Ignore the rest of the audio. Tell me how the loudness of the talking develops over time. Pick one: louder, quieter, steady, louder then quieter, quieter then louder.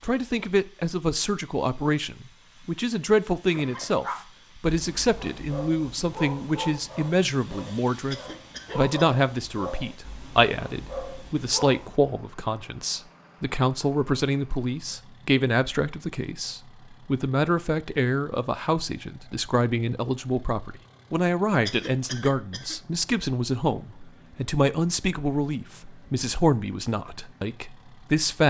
steady.